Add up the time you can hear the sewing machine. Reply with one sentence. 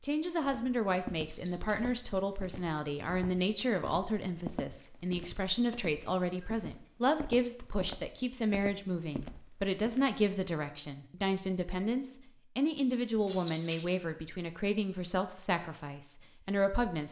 You can't hear the sewing machine here.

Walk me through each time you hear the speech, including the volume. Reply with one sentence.
The speech can be heard from 0.0 to 17.0 s, at a steady volume.